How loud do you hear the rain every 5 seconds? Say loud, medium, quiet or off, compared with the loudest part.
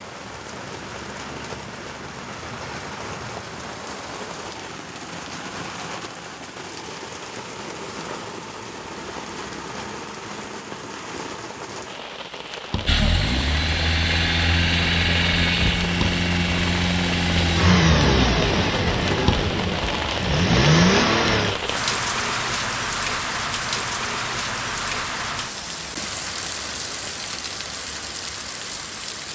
medium, medium, medium, loud, loud, medium.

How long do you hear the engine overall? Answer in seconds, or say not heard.
9 s.